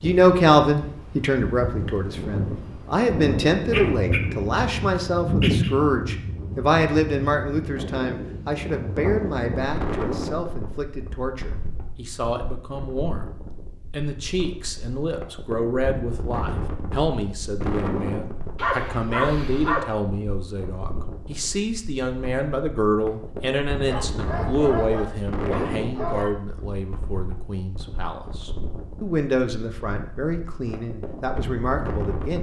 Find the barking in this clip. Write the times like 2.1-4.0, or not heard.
3.7-5.7, 18.6-19.9, 23.9-26.3.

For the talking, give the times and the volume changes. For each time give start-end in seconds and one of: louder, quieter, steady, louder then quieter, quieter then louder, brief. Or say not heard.
0.0-32.3 quieter.